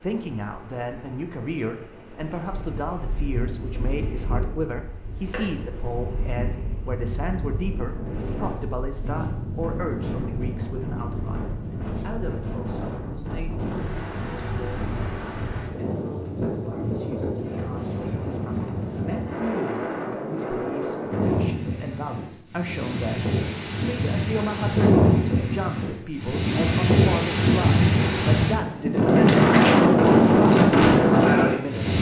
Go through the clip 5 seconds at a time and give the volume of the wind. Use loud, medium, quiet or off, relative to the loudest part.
quiet, quiet, quiet, quiet, medium, loud, loud.